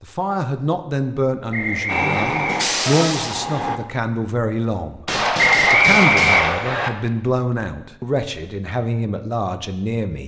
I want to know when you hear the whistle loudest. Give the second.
6 s.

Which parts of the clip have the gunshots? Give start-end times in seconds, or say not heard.
5.0-6.7.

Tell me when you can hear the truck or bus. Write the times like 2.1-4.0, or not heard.
1.9-3.8.